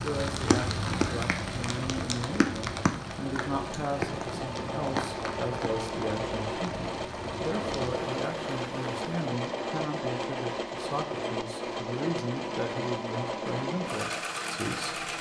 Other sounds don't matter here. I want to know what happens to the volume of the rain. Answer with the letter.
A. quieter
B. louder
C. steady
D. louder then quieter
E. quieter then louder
A.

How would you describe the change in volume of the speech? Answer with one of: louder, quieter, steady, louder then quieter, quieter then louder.
steady.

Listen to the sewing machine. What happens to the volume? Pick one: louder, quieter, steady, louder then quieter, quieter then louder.
louder.